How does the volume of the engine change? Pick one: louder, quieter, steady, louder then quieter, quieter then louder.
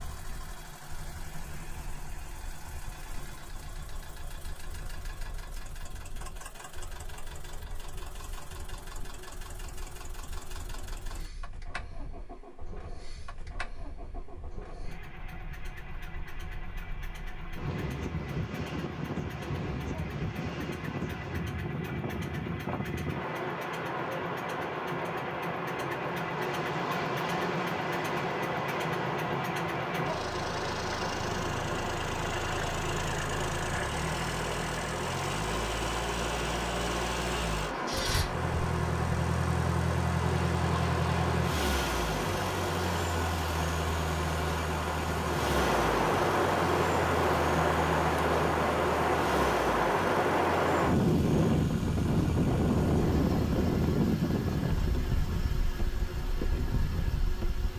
louder then quieter.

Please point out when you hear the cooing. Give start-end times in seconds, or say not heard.
not heard.